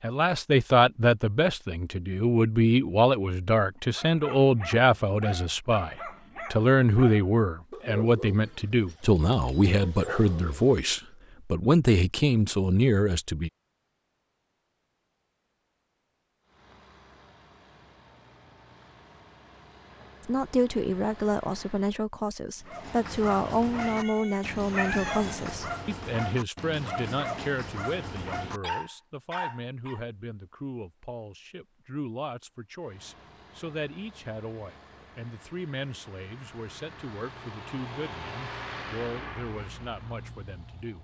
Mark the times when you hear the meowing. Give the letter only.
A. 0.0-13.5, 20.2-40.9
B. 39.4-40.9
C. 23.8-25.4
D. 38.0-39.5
C.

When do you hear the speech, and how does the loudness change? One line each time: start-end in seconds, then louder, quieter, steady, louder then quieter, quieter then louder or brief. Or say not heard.
0.0-13.5 steady
20.2-40.9 quieter.